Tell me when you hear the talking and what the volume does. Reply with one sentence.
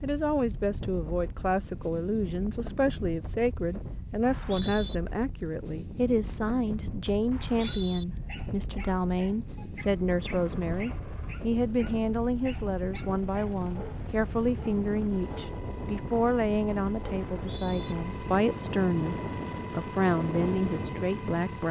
The talking can be heard from 0.0 to 21.6 s, at a steady volume.